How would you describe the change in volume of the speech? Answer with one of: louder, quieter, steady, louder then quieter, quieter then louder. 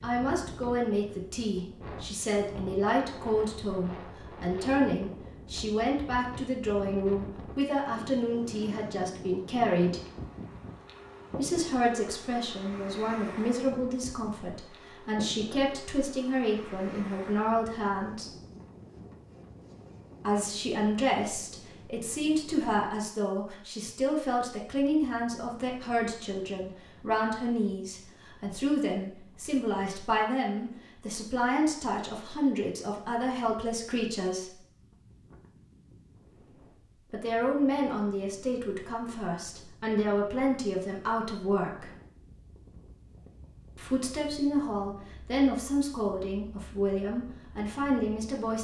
steady.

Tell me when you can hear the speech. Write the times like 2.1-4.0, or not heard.
0.0-10.0, 11.3-18.3, 20.2-34.5, 37.1-41.9, 43.8-48.5.